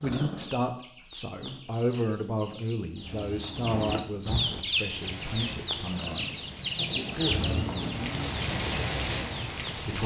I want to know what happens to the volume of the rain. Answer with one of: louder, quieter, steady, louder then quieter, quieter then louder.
louder.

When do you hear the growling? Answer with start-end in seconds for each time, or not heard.
0.0-0.6, 5.9-7.9.